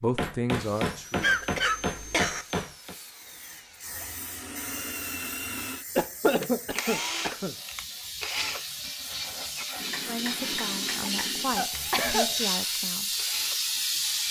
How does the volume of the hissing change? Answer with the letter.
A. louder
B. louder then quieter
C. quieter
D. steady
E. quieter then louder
A.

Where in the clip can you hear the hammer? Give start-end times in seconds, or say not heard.
0.1-3.0, 9.8-11.6.